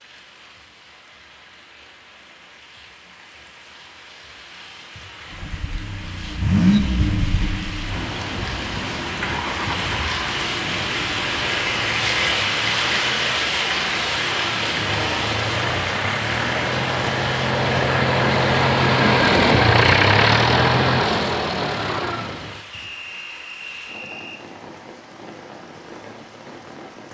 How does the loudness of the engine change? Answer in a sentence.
The volume of the engine goes down, then up.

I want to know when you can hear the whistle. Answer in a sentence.
The whistle can be heard from 22.7 to 24.4 s.